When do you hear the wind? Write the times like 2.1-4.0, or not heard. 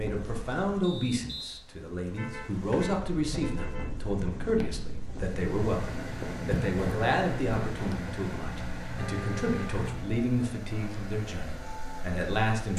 0.0-8.1.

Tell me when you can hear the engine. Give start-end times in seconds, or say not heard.
5.2-12.7.